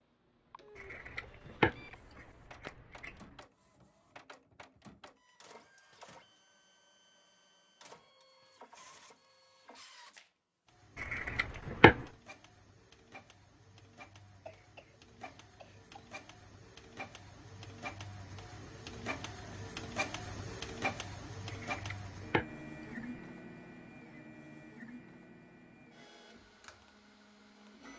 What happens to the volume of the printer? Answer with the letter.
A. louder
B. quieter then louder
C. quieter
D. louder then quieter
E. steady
D.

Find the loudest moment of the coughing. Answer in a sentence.
The loudest moment of the coughing is at 15 seconds.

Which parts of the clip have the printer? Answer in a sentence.
You can hear the printer from 0.0 to 27.9 s.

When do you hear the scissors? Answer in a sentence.
You can hear the scissors from 0.8 to 3.2 s, from 10.9 to 12.1 s and from 21.4 to 23.1 s.